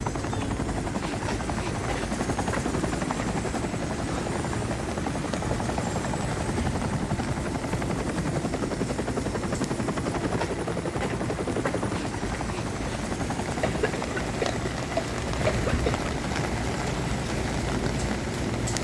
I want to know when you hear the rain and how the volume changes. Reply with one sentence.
The rain can be heard from 0.0 to 18.8 s, getting louder.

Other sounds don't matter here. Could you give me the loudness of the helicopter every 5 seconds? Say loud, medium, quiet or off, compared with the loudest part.
loud, loud, loud, medium.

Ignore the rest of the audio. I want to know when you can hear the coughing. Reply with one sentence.
You can hear the coughing from 13.6 to 16.1 s.